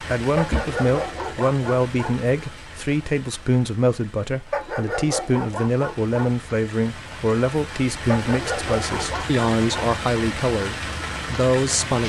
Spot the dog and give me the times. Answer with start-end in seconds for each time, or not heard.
0.3-2.1, 4.5-6.3, 8.1-9.9.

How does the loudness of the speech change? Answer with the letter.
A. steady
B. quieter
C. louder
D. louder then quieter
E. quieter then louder
A.